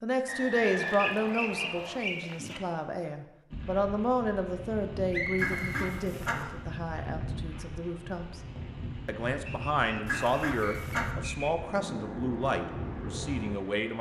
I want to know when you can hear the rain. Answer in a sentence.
You can hear the rain from 3.5 to 13.9 s.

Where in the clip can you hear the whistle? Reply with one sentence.
The whistle can be heard from 0.2 to 2.0 s, from 5.1 to 6.5 s and from 9.4 to 11.5 s.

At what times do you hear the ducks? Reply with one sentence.
You can hear the ducks from 0.6 to 2.6 s, from 5.3 to 6.5 s and from 10.1 to 11.1 s.